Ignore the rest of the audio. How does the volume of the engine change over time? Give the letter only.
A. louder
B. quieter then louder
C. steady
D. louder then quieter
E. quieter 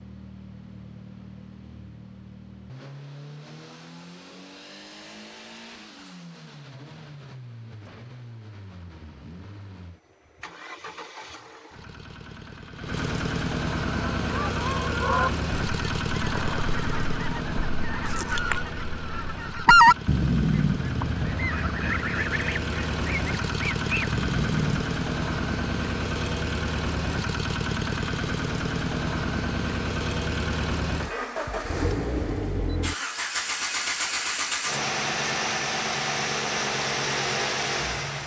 A.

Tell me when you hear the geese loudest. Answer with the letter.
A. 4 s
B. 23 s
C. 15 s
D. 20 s
D.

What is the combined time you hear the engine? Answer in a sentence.
The engine can be heard for 38 seconds in total.